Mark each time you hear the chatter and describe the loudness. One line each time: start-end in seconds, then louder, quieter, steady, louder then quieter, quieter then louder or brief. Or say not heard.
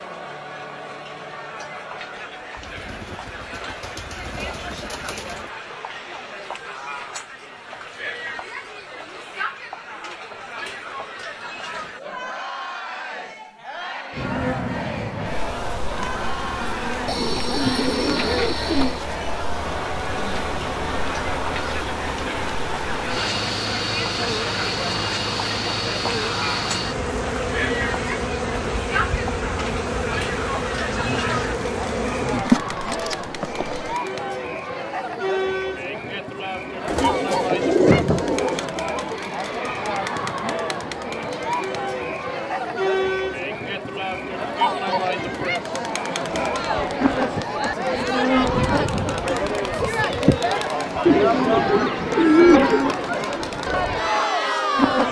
0.0-55.0 louder.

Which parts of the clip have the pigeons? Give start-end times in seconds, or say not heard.
2.5-5.5, 17.1-19.0, 36.9-38.6, 51.0-52.8.